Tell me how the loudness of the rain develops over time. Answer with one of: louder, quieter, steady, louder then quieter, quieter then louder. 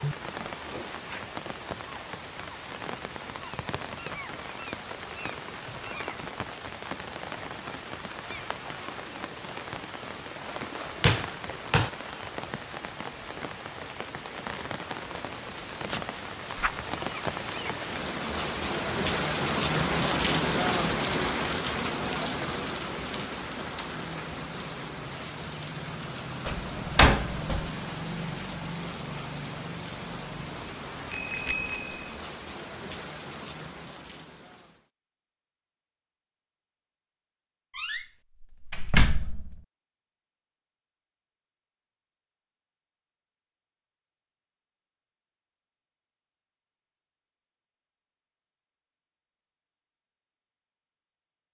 louder then quieter.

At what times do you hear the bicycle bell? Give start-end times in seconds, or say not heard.
31.1-32.1.